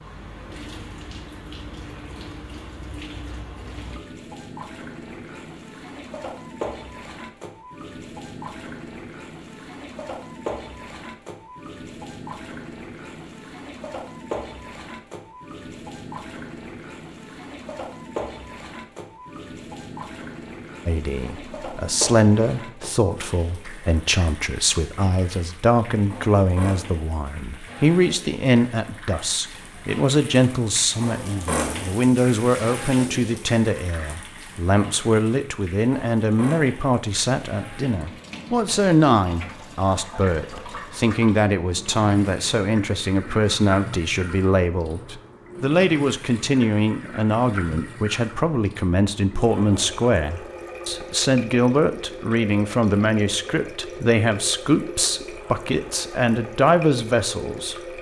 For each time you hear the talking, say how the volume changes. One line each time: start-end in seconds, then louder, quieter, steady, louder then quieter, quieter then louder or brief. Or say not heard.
20.9-57.8 steady.